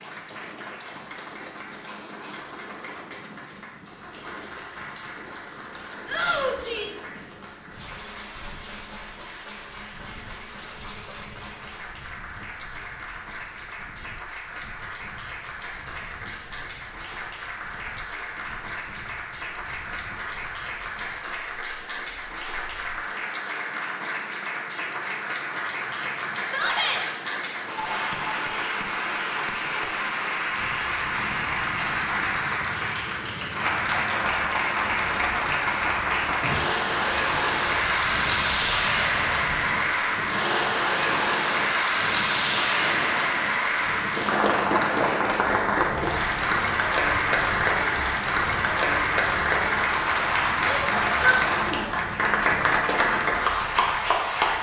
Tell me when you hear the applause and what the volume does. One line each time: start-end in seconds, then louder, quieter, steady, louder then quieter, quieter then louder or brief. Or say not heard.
0.0-54.5 louder.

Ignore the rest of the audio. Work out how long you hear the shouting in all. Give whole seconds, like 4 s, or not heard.
3 s.